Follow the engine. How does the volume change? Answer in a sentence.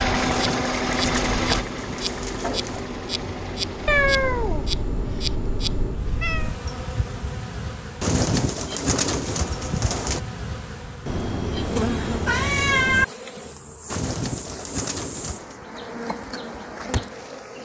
The volume of the engine goes down.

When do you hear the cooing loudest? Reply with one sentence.
The volume of the cooing peaks at 8 seconds.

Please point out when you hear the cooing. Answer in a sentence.
The cooing can be heard from 0.1 to 2.9 s, from 8.0 to 10.2 s and from 13.9 to 15.7 s.